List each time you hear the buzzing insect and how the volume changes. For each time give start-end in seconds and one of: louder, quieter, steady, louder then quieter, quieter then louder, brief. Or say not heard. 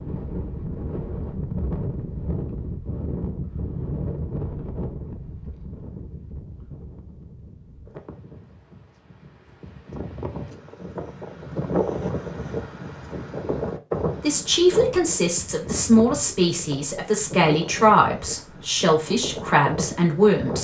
not heard.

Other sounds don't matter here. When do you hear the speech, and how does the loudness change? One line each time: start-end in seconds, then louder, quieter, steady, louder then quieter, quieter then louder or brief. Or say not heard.
14.2-20.5 steady.